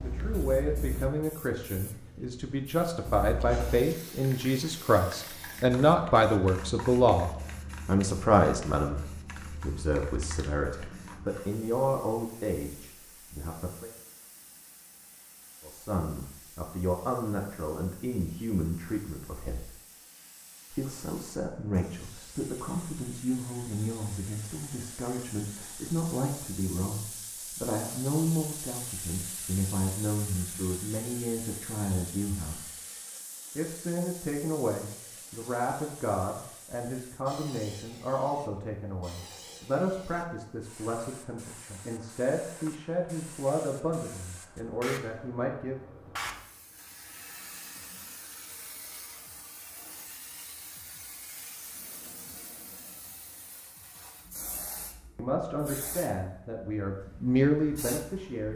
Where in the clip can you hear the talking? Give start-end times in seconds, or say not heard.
0.0-13.9, 15.6-19.7, 20.7-32.6, 33.5-45.9, 55.1-58.5.